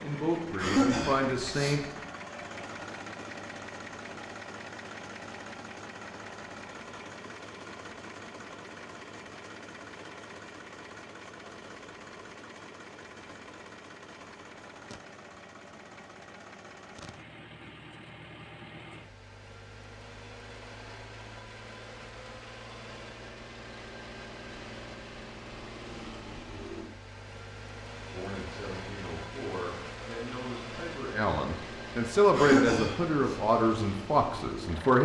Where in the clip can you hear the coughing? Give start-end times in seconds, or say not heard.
0.6-1.9, 32.4-33.4.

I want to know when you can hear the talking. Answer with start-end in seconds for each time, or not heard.
0.0-1.8, 28.1-35.0.